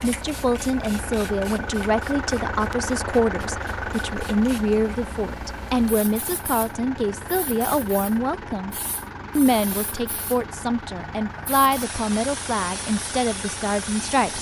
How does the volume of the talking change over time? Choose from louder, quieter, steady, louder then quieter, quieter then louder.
steady.